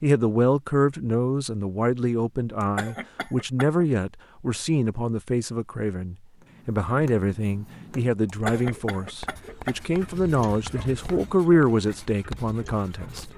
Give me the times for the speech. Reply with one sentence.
The speech can be heard from 0.0 to 13.2 s.